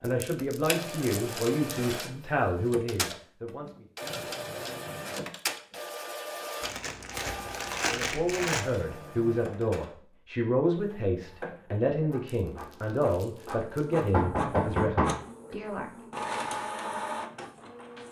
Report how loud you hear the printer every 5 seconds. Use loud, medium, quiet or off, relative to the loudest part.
loud, loud, medium, loud.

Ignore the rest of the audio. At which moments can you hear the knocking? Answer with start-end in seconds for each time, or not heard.
14.1-15.7.